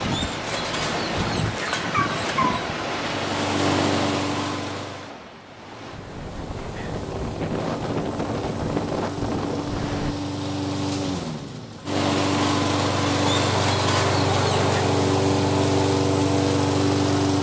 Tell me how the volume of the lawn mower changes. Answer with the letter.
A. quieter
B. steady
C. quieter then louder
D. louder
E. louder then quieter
C.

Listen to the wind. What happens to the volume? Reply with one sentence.
The volume of the wind goes down, then up.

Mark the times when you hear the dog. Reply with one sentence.
The dog can be heard from 0.1 to 2.6 s and from 13.2 to 14.8 s.